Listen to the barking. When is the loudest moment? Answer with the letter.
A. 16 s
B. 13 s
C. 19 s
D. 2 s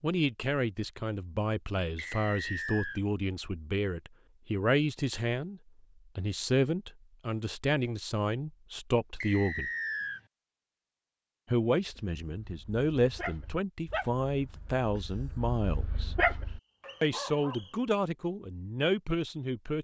A.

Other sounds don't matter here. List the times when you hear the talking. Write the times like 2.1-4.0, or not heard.
0.0-9.7, 11.5-16.1, 17.0-19.7.